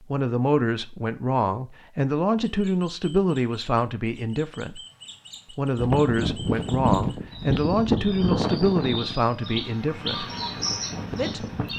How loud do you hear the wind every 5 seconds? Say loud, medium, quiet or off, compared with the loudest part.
off, loud, medium.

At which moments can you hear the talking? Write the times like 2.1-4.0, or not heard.
0.0-4.8, 5.5-10.2, 11.1-11.7.